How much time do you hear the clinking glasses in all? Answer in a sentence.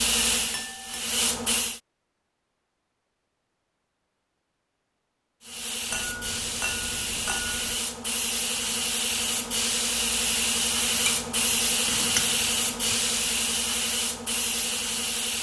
You can hear the clinking glasses for 5 seconds altogether.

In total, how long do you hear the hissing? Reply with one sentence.
You can hear the hissing for 12 seconds altogether.